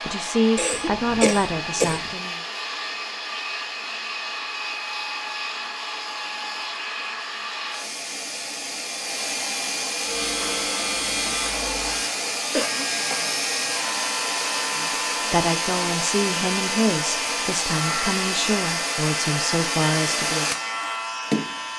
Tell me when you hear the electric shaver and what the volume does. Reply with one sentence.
The electric shaver can be heard from 9.9 to 21.7 s, at a steady volume.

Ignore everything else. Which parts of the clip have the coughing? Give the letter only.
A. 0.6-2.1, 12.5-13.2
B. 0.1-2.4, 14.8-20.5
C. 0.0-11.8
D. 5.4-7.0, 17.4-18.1
A.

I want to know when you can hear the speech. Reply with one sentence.
You can hear the speech from 0.1 to 2.4 s and from 14.8 to 20.5 s.